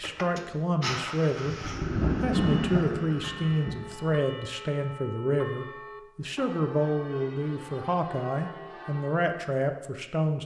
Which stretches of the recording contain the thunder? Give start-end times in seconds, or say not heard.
1.6-4.0.